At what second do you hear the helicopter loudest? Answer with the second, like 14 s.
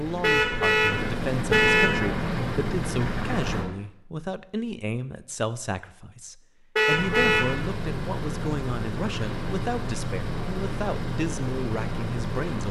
2 s.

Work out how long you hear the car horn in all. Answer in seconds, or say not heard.
3 s.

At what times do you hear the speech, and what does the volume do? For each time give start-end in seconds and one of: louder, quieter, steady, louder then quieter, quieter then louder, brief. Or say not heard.
0.0-12.6 steady.